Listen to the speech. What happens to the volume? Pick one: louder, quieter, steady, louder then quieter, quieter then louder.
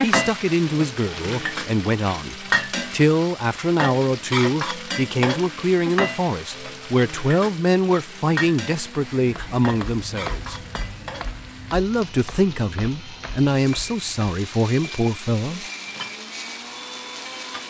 steady.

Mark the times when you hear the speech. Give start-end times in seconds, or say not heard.
0.0-10.6, 11.7-15.7.